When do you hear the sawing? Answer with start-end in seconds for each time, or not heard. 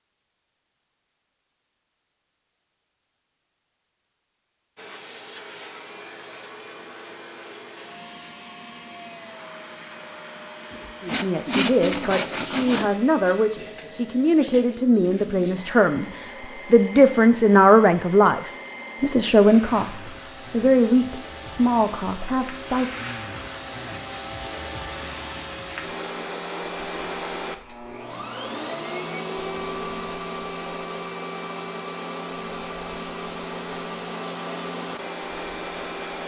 10.7-12.9.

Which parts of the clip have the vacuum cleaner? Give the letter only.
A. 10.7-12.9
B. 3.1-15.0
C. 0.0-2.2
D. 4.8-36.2
D.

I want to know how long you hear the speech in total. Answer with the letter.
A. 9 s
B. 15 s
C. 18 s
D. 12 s
D.